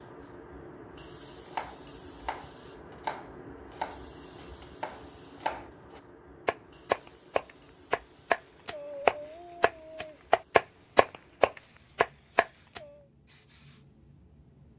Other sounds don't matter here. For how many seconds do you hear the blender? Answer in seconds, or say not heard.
not heard.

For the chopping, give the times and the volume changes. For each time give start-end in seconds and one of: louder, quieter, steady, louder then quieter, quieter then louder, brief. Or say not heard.
1.4-12.8 louder.